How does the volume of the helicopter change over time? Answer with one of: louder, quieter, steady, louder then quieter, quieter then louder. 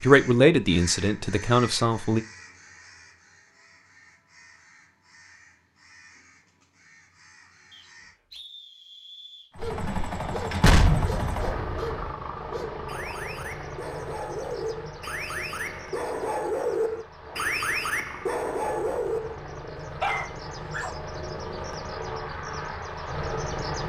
quieter then louder.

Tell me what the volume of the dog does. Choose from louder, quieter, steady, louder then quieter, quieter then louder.
louder.